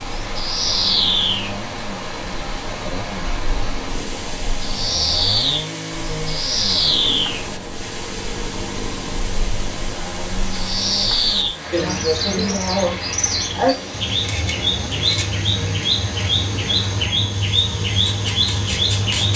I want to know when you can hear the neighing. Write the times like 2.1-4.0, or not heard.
not heard.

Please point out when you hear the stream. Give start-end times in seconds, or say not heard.
0.0-19.3.